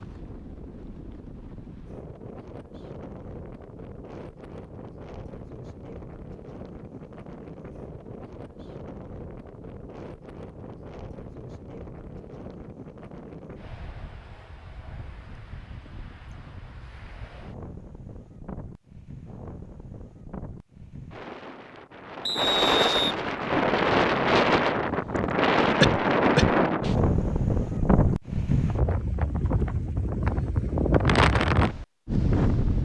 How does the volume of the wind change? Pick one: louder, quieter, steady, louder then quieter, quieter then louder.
louder.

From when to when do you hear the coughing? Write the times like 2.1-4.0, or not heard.
25.8-27.0.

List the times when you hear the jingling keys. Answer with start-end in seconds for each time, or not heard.
not heard.